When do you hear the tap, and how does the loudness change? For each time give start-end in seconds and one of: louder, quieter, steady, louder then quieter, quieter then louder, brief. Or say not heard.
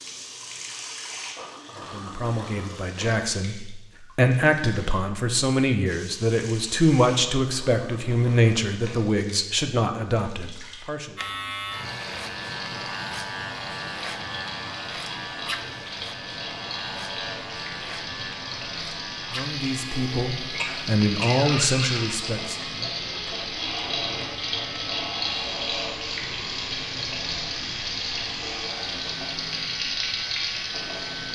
0.0-31.3 louder.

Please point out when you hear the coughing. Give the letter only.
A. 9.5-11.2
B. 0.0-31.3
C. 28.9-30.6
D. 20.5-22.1
D.